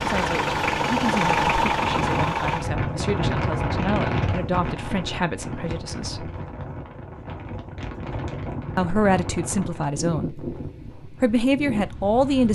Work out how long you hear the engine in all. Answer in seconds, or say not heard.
3 s.